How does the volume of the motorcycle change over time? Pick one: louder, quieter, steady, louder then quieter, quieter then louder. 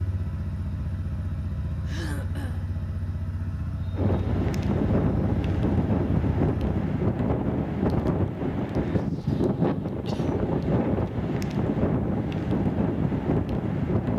steady.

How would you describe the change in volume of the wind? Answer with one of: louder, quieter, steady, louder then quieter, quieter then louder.
steady.